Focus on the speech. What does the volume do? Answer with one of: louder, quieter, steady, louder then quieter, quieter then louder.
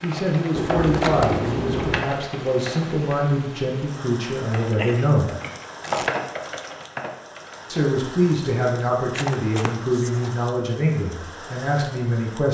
steady.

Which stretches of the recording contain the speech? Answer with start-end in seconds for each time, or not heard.
0.0-5.3, 7.7-12.5.